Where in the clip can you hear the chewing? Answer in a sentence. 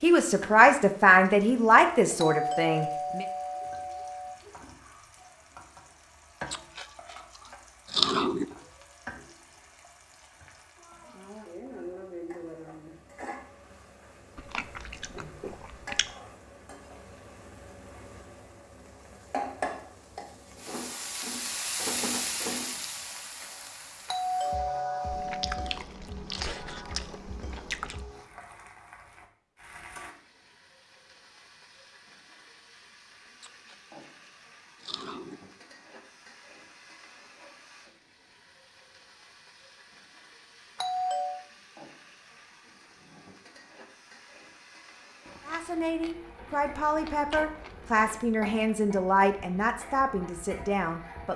The chewing can be heard from 6.5 to 8.4 s, from 14.3 to 16.1 s, from 25.1 to 28.1 s, from 33.4 to 35.4 s and from 45.2 to 48.2 s.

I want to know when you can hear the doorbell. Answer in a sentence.
You can hear the doorbell from 2.1 to 4.3 s, from 24.1 to 25.8 s and from 40.8 to 41.4 s.